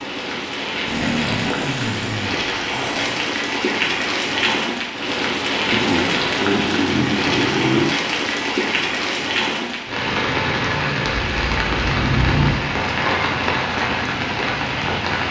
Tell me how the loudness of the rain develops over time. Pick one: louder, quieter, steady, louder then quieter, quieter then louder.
steady.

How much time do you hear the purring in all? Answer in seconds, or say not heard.
not heard.